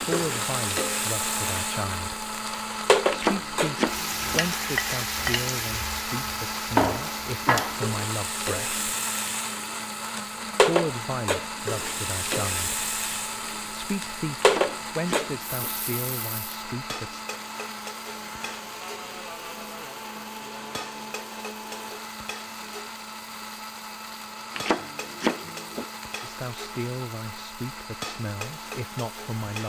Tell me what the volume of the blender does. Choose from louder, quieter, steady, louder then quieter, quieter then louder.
quieter.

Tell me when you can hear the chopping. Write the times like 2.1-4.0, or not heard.
3.1-4.5, 14.4-15.7, 24.6-25.9.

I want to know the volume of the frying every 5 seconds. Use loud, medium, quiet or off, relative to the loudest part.
loud, loud, loud, medium, quiet, quiet.